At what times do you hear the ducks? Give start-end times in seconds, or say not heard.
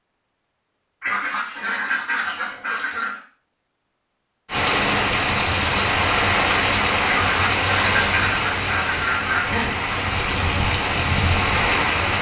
1.0-3.2, 7.0-9.7.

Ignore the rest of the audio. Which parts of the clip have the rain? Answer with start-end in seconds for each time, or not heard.
4.5-12.1.